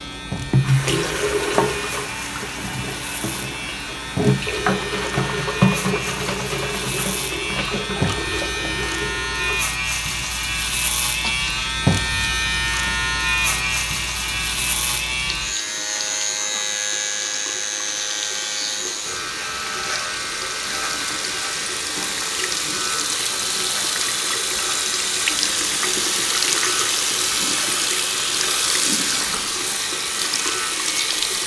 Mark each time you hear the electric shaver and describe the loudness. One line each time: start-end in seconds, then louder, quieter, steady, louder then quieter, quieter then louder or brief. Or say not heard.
0.0-31.4 louder then quieter.